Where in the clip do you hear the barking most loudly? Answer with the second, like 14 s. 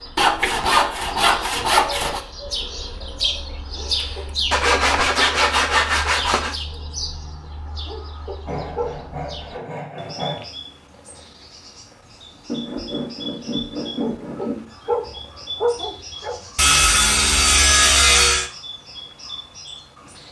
16 s.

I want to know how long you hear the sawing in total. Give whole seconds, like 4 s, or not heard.
10 s.